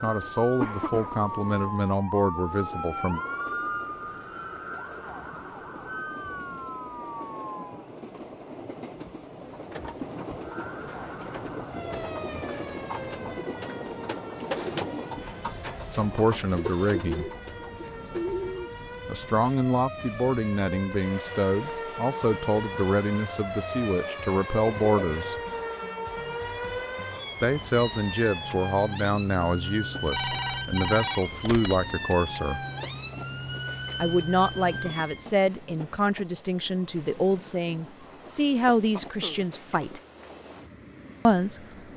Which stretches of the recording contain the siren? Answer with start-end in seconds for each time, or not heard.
0.0-7.8, 10.4-35.3.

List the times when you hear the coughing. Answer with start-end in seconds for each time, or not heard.
0.6-1.1, 24.6-25.3, 39.0-39.9.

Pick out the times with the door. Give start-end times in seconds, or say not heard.
not heard.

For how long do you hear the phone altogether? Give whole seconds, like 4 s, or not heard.
2 s.